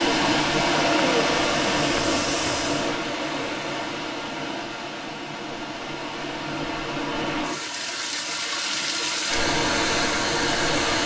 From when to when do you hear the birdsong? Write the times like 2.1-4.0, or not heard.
not heard.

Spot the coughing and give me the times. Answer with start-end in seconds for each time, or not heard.
not heard.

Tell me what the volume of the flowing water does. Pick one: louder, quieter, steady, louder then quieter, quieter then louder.
quieter then louder.